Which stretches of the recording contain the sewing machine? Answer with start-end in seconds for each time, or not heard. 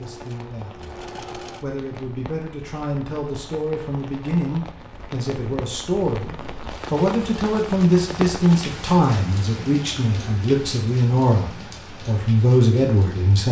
0.0-1.6.